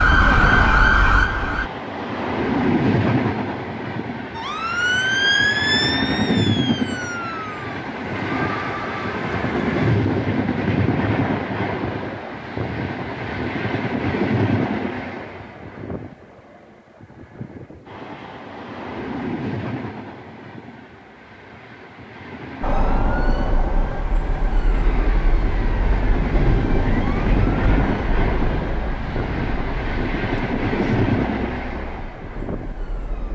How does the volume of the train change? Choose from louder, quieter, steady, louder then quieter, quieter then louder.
quieter then louder.